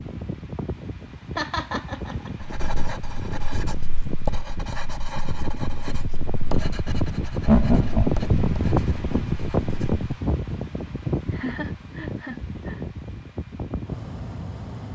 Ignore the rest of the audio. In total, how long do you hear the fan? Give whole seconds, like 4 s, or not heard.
15 s.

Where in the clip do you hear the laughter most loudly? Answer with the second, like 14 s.
8 s.